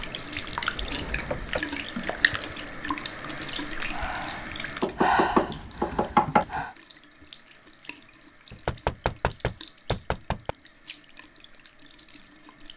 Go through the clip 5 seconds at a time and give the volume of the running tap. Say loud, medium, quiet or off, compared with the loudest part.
loud, quiet, quiet.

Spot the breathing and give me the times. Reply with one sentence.
The breathing can be heard from 0.0 to 6.7 s.